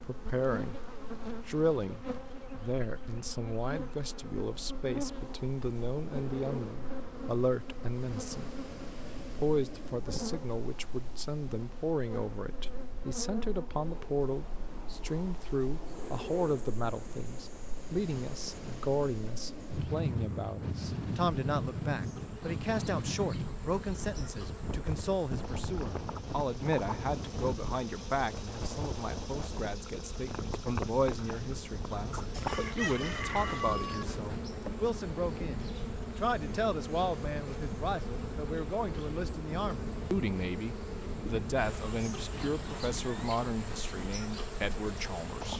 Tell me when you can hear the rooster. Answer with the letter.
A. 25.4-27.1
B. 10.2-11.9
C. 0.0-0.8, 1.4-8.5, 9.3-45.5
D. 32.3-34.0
D.